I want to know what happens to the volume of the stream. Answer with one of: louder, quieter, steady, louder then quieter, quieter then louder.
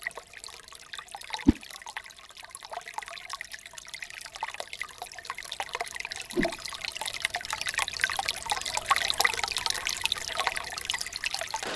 louder.